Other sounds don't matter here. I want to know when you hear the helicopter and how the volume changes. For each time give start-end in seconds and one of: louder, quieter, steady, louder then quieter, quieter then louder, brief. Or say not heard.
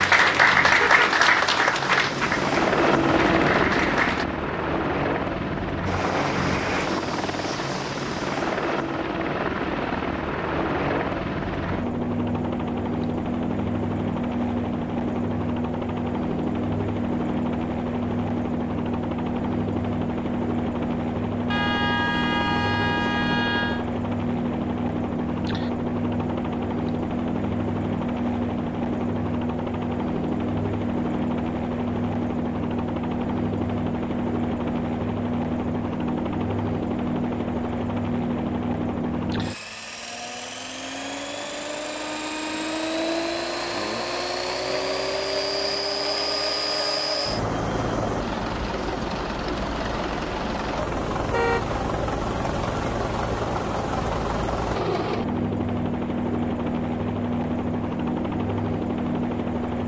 0.0-59.8 steady.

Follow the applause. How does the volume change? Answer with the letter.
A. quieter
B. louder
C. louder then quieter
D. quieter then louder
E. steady
D.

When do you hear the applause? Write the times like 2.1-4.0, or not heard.
0.0-4.2.